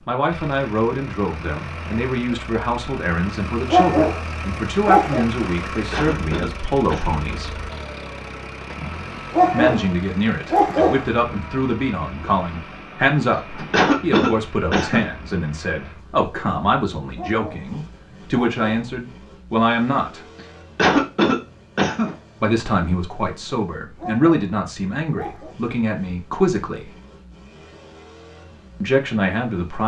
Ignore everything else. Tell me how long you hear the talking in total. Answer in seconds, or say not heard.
24 s.